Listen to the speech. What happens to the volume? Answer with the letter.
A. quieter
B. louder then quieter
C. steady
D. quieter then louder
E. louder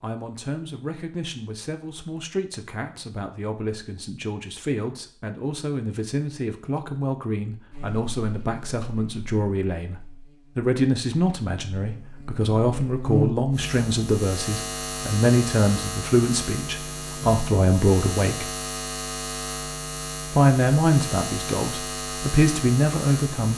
E.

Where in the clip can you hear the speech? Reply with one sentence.
You can hear the speech from 0.0 to 18.5 s and from 20.4 to 23.5 s.